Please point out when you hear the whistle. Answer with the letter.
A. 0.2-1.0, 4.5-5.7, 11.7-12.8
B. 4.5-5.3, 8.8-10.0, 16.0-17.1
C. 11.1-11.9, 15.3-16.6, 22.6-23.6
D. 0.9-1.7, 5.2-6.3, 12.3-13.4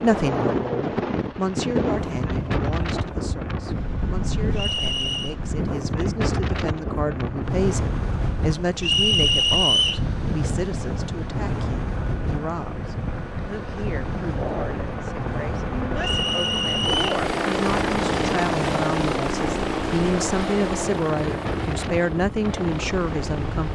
B.